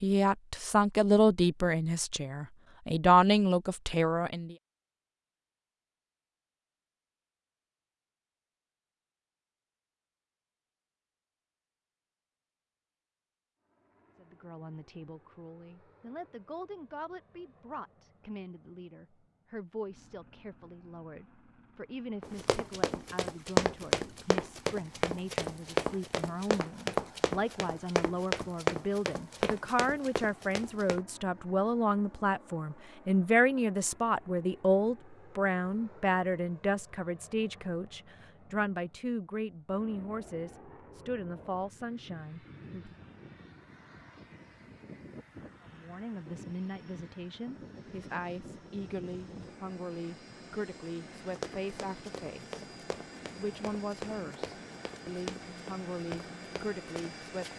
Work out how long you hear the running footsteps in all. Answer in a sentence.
The running footsteps can be heard for 15 seconds in total.